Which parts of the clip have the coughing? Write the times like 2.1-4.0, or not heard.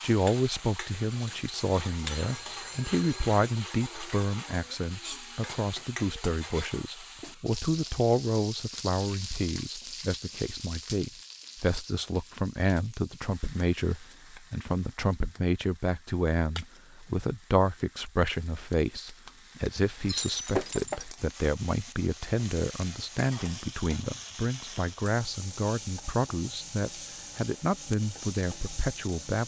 not heard.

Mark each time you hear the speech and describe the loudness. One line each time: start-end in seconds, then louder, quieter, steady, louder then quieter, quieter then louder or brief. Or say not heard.
0.0-29.4 steady.